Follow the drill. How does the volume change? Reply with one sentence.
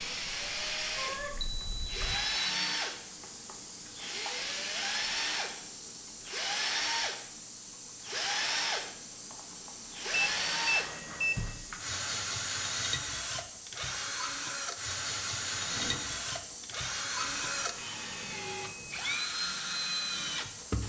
The volume of the drill stays about the same.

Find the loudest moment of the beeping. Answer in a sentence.
The volume of the beeping peaks at 11 seconds.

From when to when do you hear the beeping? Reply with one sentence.
The beeping can be heard from 1.1 to 2.7 s, from 10.1 to 11.6 s and from 17.1 to 19.2 s.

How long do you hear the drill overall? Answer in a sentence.
The drill can be heard for 21 seconds in total.